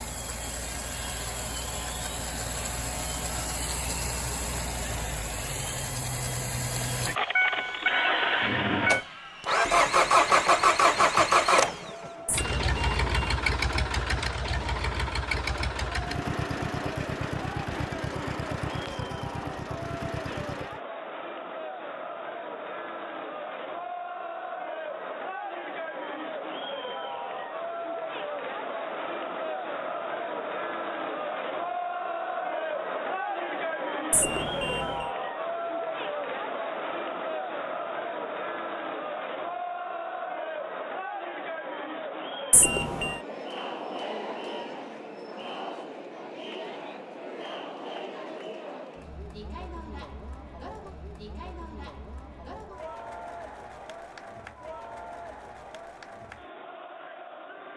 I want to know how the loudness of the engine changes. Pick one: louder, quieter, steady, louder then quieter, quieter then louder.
louder then quieter.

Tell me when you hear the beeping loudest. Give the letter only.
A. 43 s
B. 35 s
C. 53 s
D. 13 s
A.